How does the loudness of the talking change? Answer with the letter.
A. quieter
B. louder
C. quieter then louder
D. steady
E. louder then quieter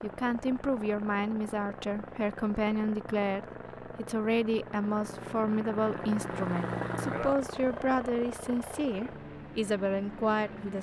D.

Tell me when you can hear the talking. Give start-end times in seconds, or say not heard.
0.0-10.7.